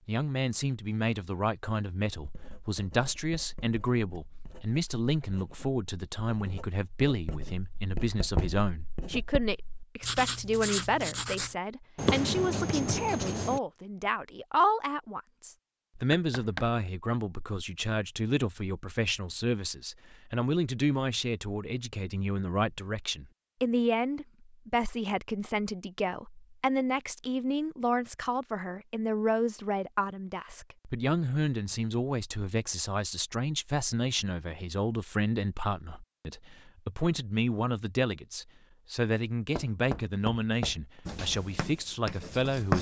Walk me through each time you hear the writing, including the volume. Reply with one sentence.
You can hear the writing from 2.1 to 13.6 s, getting louder; and briefly from 41.0 to 42.7 s.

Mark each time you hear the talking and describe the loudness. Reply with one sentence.
The talking can be heard from 0.1 to 42.7 s, at a steady volume.